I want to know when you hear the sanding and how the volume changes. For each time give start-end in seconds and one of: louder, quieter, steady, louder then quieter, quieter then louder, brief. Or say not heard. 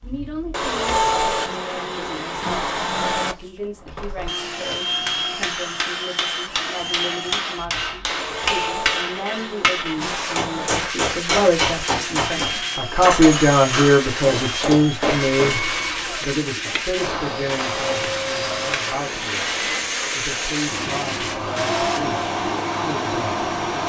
9.9-22.0 steady.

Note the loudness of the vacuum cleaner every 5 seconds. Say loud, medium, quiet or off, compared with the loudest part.
loud, medium, medium, loud, loud.